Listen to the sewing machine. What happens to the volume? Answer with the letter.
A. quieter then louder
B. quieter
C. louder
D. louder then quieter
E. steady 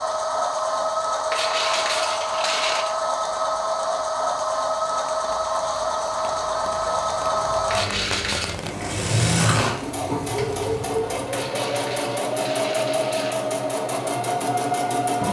E.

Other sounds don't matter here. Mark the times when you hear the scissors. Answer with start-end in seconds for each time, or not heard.
8.9-9.8.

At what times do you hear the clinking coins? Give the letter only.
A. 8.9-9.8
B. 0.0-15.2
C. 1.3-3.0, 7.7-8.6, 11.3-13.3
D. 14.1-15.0
C.